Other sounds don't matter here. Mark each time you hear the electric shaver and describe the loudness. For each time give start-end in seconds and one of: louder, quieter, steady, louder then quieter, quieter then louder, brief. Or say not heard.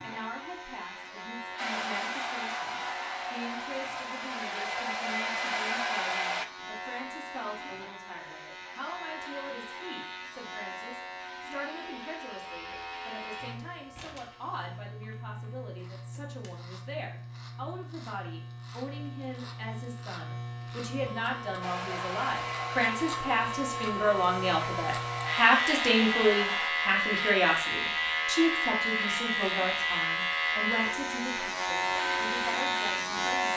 0.0-33.5 louder.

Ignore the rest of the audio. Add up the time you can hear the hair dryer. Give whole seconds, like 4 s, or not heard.
10 s.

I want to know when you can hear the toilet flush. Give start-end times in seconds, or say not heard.
not heard.